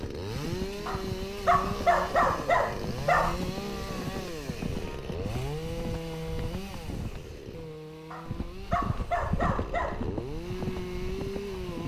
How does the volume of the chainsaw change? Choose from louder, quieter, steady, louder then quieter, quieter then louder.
quieter then louder.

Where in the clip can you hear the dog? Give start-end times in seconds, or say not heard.
0.8-3.4, 8.1-10.1.